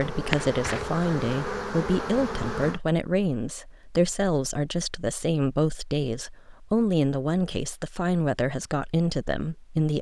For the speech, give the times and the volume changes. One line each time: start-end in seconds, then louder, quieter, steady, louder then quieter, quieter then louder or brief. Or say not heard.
0.0-9.9 steady.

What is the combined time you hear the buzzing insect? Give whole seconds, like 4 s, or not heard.
3 s.